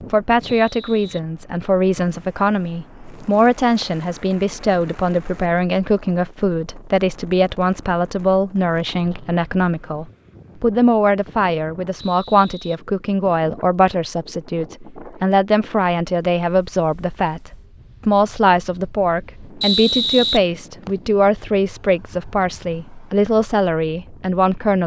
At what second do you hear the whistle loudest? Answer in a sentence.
The loudest moment of the whistle is at 20 seconds.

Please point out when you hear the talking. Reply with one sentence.
You can hear the talking from 0.1 to 24.8 s.